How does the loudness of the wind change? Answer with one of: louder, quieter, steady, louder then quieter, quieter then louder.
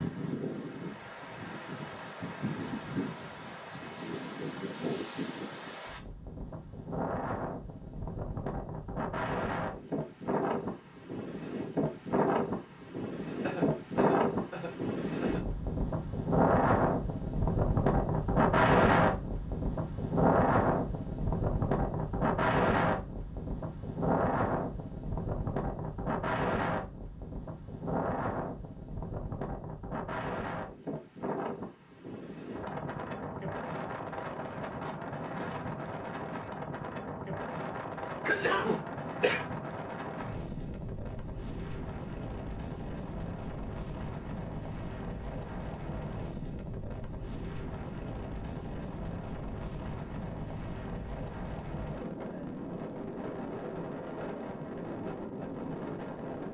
louder then quieter.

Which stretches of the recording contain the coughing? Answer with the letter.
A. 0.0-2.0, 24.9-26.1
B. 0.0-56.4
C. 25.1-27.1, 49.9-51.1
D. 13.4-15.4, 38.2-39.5
D.